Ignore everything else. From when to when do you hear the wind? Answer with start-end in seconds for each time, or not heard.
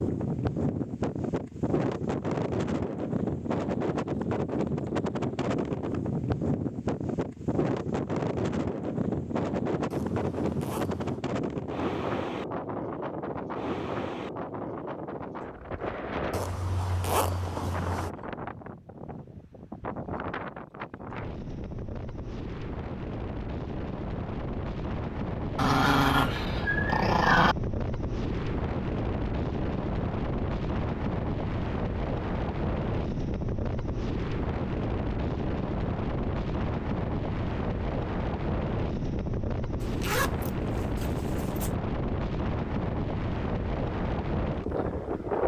0.0-45.4.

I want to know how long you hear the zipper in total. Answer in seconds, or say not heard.
5 s.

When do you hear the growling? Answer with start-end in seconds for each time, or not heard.
25.6-27.6.